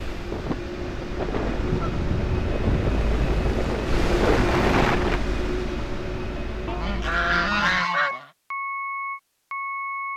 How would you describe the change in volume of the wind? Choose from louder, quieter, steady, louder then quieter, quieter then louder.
louder.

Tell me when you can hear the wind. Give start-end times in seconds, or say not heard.
0.1-5.2.